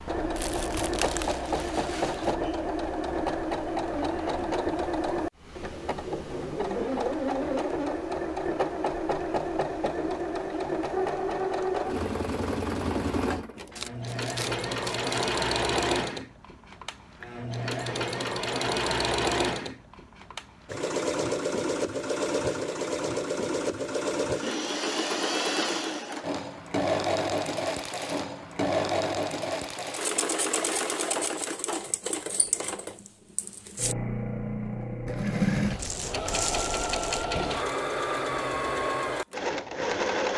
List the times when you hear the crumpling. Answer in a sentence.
The crumpling can be heard from 0.3 to 2.4 s, from 13.8 to 15.1 s and from 35.8 to 37.2 s.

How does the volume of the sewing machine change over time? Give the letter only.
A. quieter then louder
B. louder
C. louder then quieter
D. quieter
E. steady
E.